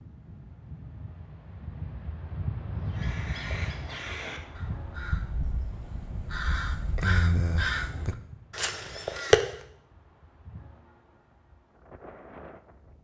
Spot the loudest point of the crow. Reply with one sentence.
The volume of the crow peaks at 9 seconds.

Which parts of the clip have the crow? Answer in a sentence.
The crow can be heard from 2.8 to 9.5 s.